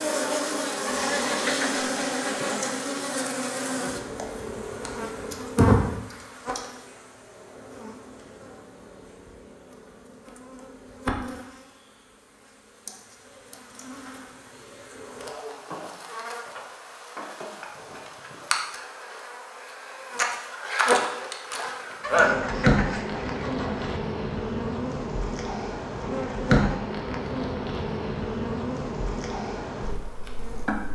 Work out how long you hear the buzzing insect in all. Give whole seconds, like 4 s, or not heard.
31 s.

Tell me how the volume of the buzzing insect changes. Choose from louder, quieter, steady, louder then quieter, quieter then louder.
quieter then louder.